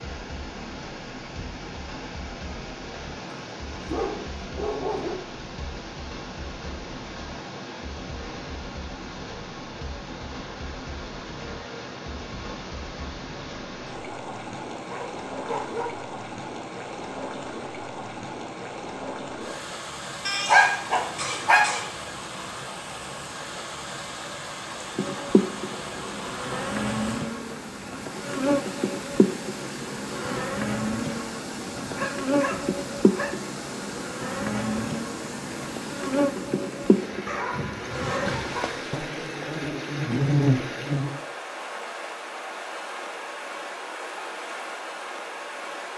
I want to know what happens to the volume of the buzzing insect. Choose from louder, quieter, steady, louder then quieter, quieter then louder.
steady.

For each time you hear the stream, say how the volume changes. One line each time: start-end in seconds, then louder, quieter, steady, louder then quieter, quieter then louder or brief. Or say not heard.
0.0-45.9 steady.